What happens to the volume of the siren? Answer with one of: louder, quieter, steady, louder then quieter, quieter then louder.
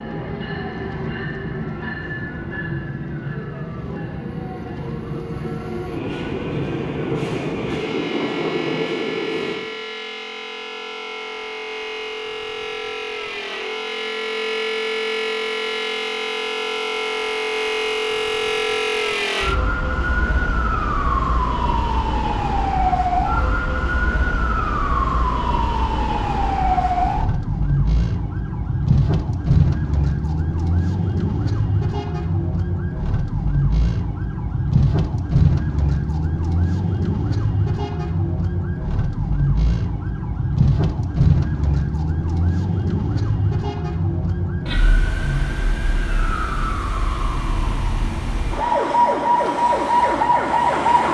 louder.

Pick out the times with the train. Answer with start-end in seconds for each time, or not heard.
0.0-9.7.